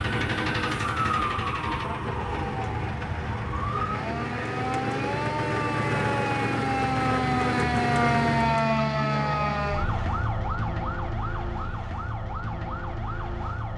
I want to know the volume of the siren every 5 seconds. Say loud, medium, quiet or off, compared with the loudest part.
medium, loud, medium.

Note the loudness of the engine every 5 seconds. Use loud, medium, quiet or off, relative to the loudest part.
loud, loud, off.